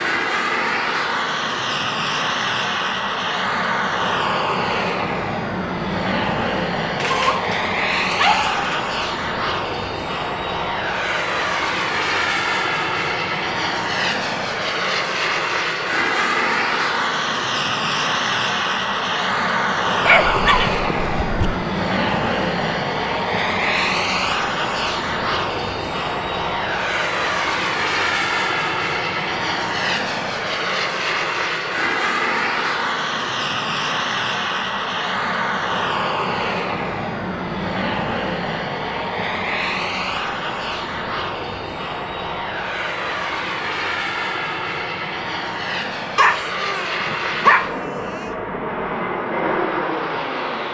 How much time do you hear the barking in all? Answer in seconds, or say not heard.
6 s.